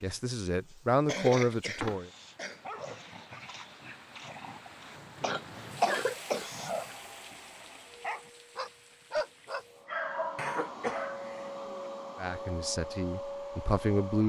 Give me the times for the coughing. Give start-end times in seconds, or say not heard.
1.1-2.6, 5.2-6.5, 10.3-11.6.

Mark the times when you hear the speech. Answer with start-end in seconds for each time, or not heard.
0.0-2.1, 12.2-14.2.